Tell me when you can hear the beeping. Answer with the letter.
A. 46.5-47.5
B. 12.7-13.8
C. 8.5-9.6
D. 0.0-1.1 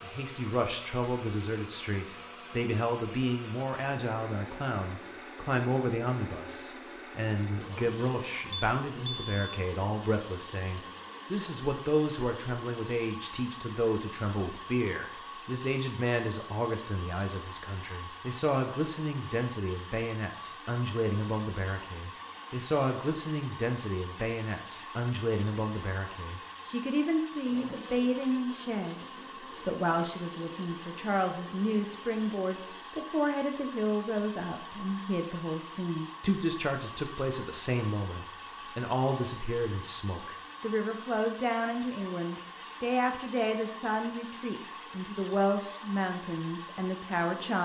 C.